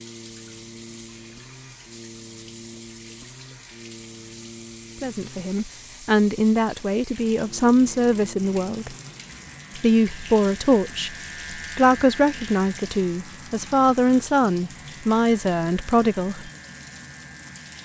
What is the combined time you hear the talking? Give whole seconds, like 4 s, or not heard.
11 s.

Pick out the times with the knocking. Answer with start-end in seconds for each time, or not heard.
not heard.